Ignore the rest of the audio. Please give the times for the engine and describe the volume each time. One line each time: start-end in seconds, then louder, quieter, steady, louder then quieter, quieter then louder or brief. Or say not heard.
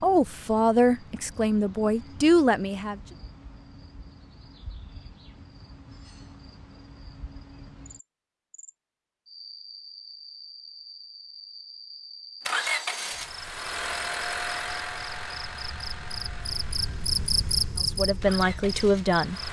12.4-19.4 quieter then louder.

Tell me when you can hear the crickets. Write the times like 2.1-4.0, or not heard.
0.0-19.4.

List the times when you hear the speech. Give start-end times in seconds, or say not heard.
0.0-3.0, 17.9-19.4.